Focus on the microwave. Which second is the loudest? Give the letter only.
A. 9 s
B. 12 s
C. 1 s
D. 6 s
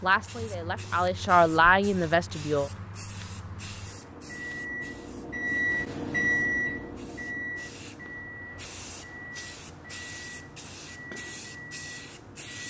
D.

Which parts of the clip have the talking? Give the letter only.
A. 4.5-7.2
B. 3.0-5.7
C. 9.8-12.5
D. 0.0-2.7
D.